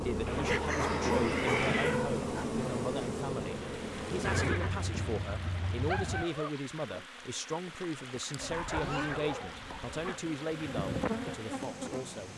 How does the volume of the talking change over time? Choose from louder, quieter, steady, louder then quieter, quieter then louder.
steady.